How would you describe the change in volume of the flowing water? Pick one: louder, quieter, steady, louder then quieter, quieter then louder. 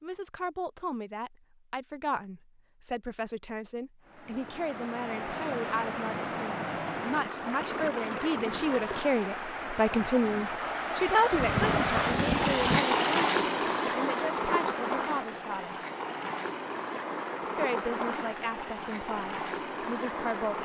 louder then quieter.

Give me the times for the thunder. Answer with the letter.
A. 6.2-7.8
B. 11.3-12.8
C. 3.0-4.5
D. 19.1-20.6
B.